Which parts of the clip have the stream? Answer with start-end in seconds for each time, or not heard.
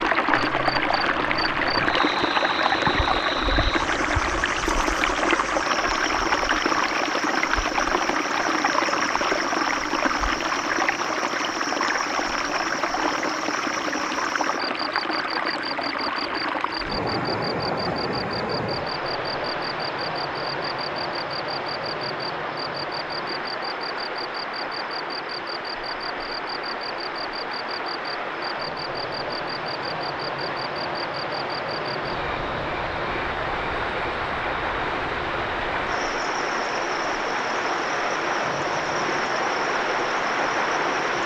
0.0-41.2.